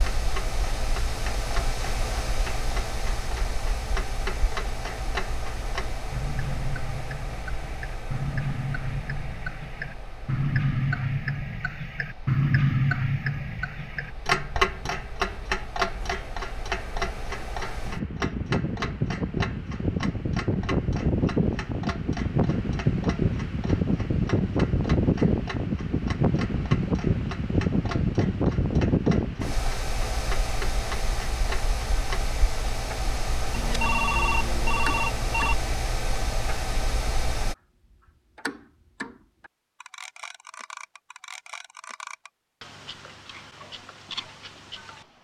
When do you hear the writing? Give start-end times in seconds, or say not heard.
not heard.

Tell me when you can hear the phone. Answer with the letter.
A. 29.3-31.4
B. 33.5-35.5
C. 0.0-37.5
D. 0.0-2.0
B.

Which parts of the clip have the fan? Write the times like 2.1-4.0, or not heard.
0.0-37.5.